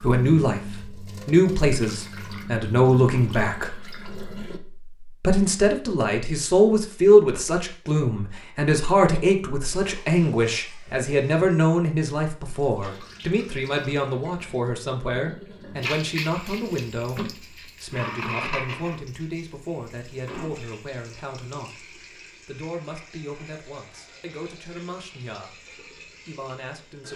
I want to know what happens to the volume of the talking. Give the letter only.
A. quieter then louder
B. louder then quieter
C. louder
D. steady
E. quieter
E.